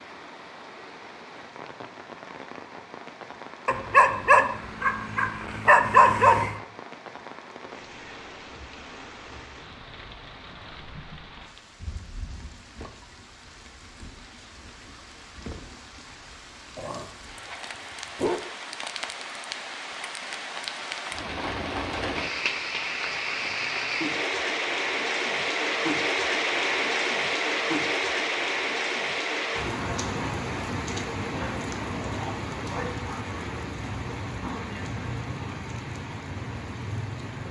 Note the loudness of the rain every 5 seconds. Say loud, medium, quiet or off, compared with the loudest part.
quiet, quiet, quiet, quiet, loud, loud, medium, medium.